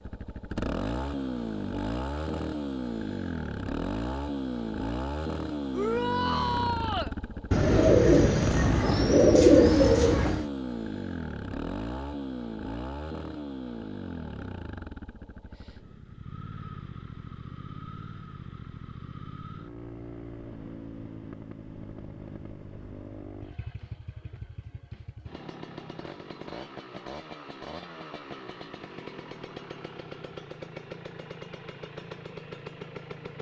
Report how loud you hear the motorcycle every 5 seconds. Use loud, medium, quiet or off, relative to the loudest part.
loud, loud, loud, medium, medium, medium, medium.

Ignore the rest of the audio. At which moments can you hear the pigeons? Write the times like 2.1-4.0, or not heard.
7.5-10.4.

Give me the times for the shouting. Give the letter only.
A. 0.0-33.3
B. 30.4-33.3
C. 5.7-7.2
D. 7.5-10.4
C.